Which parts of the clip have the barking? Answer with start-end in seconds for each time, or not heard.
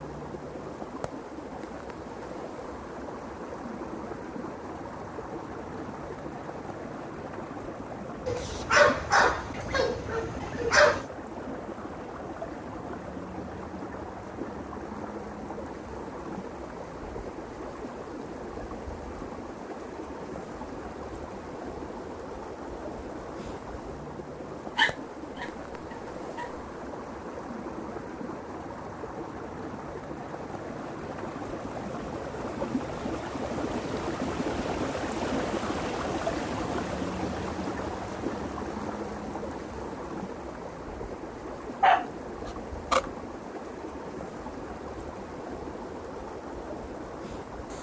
8.2-11.1, 24.8-26.5, 41.8-43.1.